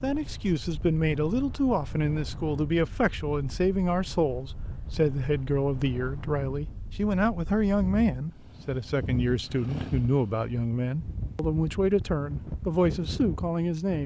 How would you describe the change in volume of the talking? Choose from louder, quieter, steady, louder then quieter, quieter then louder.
steady.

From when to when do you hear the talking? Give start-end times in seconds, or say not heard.
0.0-14.0.